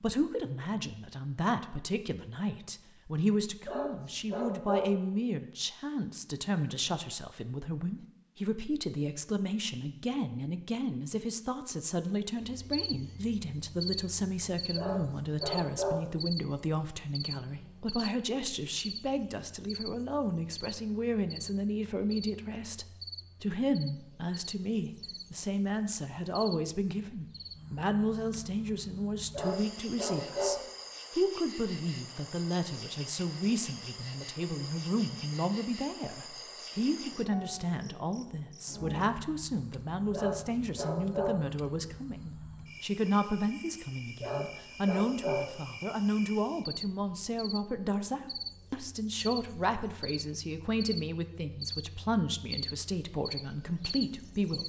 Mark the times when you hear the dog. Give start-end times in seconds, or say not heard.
3.6-5.0, 14.8-16.1, 29.3-30.7, 40.1-41.5, 44.2-45.5.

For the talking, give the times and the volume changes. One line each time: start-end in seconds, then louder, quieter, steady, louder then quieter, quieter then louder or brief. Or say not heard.
0.0-54.6 steady.